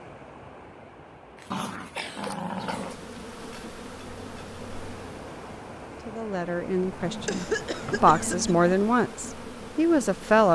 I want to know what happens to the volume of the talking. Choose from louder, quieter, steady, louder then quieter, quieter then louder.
quieter then louder.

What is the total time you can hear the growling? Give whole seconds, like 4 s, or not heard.
3 s.